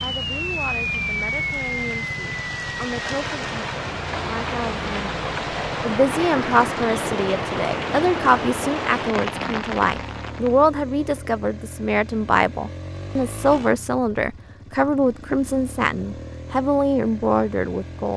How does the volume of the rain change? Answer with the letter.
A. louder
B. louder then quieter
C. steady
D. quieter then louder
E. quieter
C.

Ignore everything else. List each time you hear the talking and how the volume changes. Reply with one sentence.
You can hear the talking from 0.0 to 18.1 s, getting louder.